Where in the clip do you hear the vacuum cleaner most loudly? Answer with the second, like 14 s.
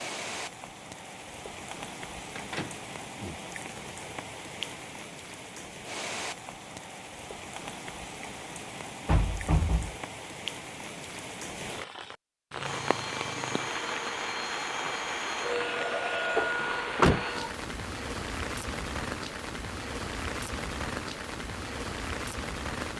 16 s.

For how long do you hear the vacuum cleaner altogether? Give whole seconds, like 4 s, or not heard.
5 s.